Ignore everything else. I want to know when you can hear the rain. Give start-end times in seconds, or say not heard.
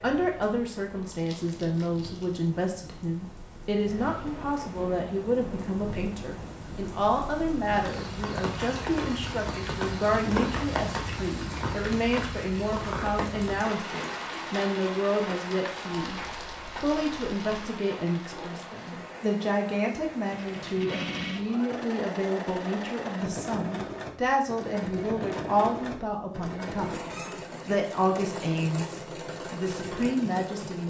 0.0-21.6.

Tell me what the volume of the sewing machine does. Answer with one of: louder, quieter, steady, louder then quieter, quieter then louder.
steady.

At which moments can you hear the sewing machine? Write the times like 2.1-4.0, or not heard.
20.1-30.8.